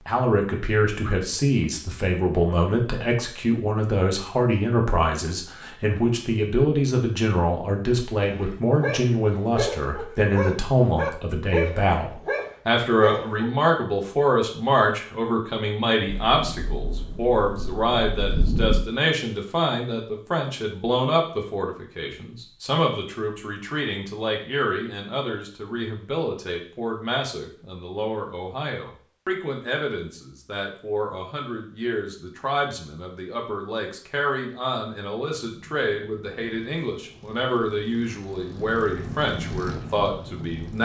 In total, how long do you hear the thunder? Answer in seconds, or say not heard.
3 s.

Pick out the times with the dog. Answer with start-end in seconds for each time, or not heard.
8.2-13.5.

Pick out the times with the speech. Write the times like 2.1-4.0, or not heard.
0.1-40.8.